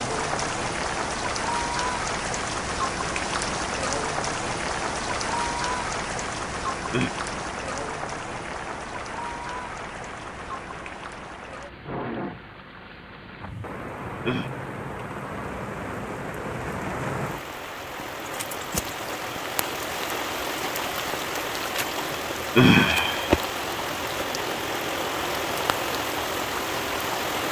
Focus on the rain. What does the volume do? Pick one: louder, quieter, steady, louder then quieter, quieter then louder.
quieter then louder.